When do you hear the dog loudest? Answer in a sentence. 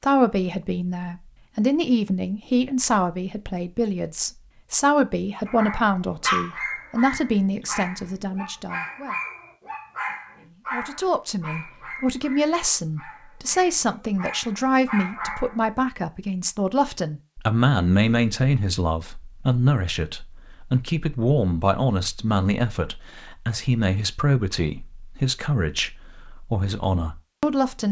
The loudest moment of the dog is at 6 seconds.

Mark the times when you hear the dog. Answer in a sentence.
You can hear the dog from 5.5 to 15.8 s.